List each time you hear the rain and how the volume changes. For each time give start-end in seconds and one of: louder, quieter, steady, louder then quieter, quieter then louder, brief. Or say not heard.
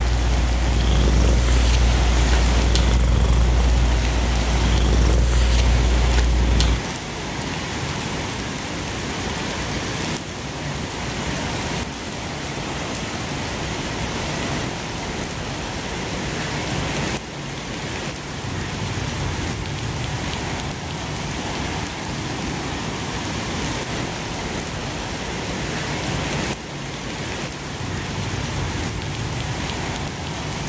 0.0-30.6 steady.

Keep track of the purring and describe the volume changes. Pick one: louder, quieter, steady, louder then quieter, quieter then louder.
steady.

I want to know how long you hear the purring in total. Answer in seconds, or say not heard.
7 s.